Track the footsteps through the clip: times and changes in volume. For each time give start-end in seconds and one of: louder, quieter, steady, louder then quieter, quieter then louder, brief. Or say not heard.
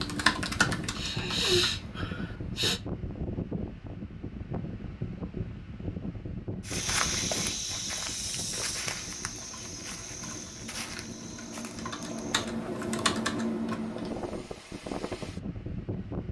6.7-12.8 quieter.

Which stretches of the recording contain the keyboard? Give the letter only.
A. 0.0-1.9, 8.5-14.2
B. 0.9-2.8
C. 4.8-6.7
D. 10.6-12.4
A.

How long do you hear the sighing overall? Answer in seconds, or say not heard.
2 s.